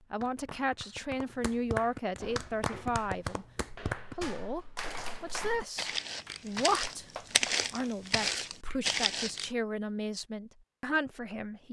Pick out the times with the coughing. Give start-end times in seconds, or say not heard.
not heard.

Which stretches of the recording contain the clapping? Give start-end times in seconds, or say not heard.
0.1-8.8.